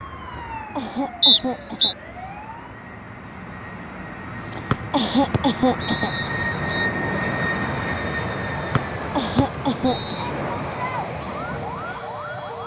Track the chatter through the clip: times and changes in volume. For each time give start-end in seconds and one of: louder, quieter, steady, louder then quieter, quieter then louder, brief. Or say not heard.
not heard.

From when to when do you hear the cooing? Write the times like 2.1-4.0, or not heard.
not heard.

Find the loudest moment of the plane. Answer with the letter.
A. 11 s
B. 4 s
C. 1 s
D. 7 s
D.